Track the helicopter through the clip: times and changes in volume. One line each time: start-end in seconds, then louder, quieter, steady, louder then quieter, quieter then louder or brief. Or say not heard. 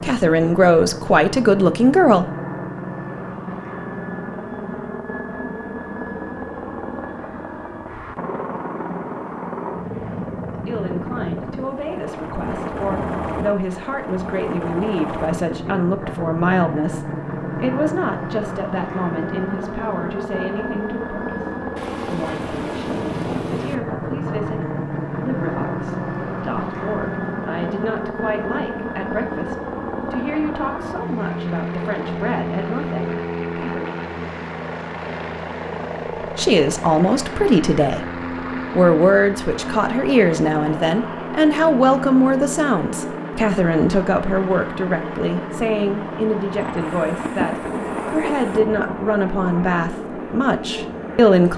0.0-51.5 steady.